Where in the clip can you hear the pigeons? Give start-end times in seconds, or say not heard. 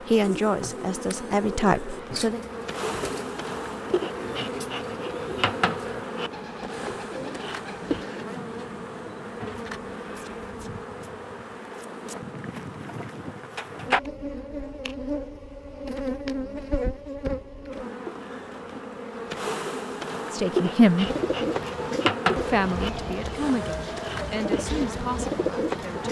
0.2-8.2, 21.1-26.0.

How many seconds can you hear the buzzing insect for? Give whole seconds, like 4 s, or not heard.
26 s.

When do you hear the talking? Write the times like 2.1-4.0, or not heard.
0.1-2.4, 20.4-21.1, 22.3-26.0.